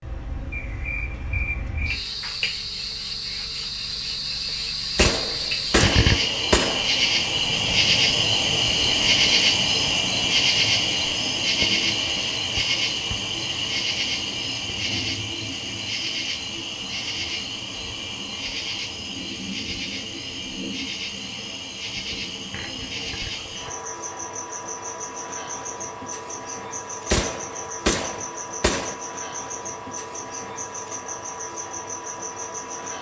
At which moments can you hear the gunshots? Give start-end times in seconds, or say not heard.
5.0-6.8, 27.1-28.9.